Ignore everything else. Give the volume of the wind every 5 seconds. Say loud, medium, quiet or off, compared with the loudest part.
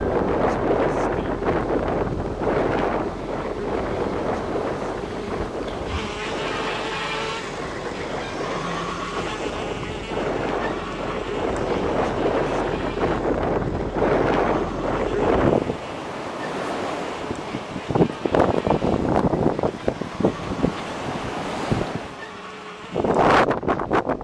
loud, medium, loud, loud, loud.